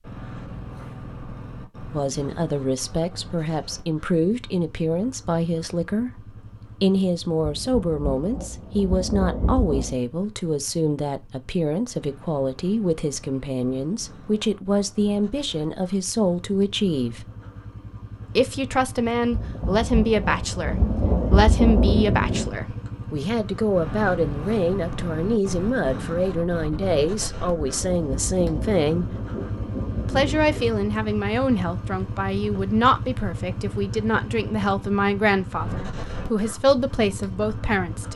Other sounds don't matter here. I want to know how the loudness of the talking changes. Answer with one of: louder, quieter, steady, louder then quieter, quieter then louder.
steady.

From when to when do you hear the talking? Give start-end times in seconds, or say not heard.
1.9-17.2, 18.4-29.1, 30.1-38.1.